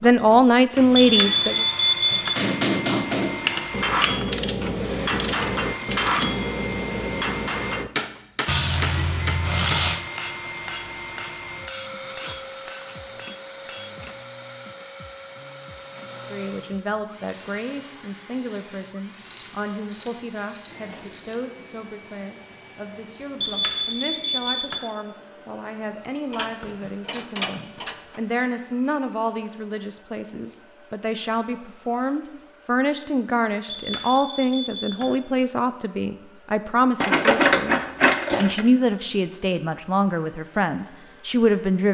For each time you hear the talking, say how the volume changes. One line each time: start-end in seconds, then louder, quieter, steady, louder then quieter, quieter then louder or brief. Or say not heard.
0.0-1.6 brief
16.3-41.8 louder.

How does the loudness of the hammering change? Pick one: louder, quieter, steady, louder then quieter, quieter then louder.
quieter.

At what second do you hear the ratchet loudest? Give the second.
37 s.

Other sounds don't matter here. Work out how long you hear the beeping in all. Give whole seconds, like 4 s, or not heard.
4 s.